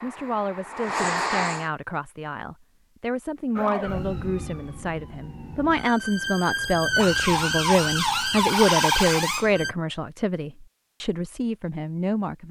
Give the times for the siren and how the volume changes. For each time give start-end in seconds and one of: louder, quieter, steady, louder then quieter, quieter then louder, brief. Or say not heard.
3.5-9.8 louder.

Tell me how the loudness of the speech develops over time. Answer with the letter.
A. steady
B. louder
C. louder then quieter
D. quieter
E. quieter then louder
C.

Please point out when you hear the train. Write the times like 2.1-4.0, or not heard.
0.0-1.7.